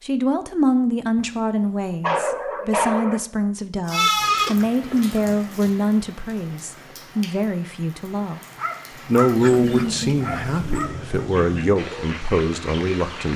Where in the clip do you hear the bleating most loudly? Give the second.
4 s.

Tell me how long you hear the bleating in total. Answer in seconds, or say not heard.
2 s.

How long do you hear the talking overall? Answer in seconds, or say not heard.
13 s.